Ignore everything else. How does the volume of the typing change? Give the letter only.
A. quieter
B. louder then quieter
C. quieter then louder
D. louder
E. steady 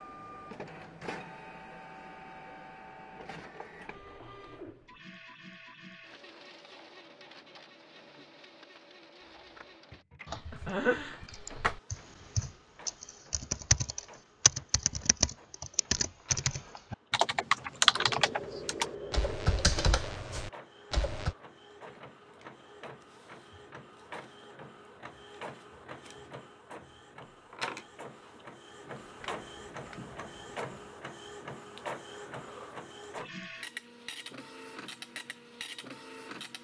B.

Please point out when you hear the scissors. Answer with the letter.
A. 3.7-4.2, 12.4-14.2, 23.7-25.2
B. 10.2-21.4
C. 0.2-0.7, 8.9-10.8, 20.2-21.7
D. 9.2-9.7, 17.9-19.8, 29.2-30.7
D.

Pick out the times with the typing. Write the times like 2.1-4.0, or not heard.
10.2-21.4.